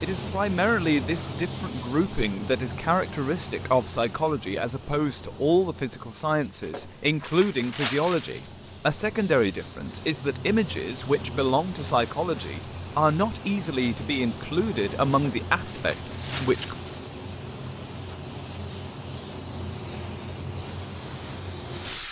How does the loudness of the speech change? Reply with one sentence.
The loudness of the speech stays about the same.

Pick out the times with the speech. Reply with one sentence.
The speech can be heard from 0.0 to 16.8 s.